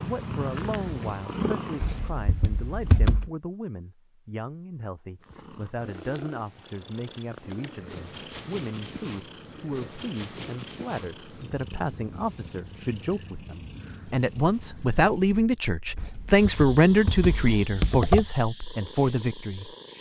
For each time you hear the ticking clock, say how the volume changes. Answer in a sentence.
The ticking clock can't be heard in this clip.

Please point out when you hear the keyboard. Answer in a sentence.
You can hear the keyboard from 1.8 to 3.3 s and from 15.9 to 18.2 s.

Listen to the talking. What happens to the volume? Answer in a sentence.
The volume of the talking goes up.